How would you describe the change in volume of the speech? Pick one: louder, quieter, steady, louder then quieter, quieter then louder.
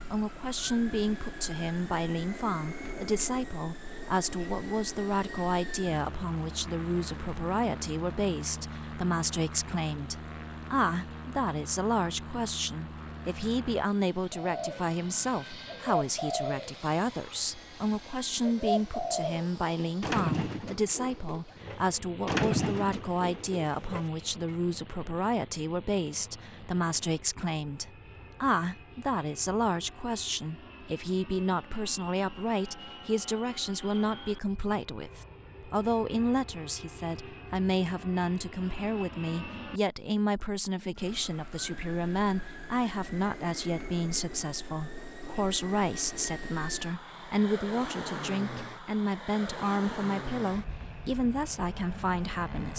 steady.